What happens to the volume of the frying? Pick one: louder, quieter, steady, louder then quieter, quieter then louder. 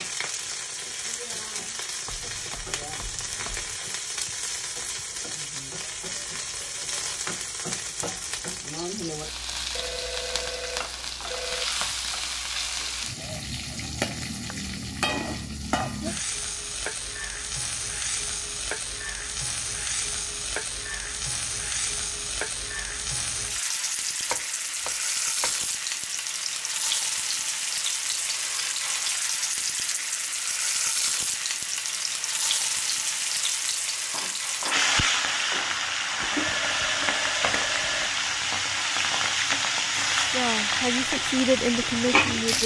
louder.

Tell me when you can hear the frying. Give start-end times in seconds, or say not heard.
0.0-42.6.